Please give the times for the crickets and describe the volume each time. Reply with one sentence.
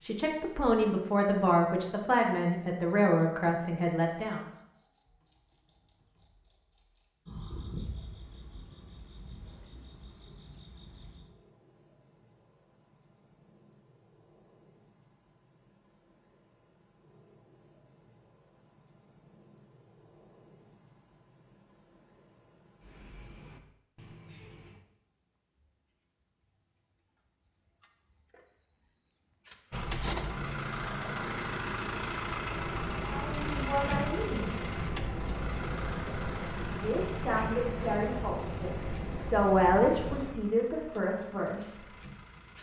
You can hear the crickets from 0.0 to 42.5 s, getting quieter then louder.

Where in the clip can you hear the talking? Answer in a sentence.
You can hear the talking from 0.0 to 4.5 s, from 33.0 to 34.6 s and from 36.7 to 41.9 s.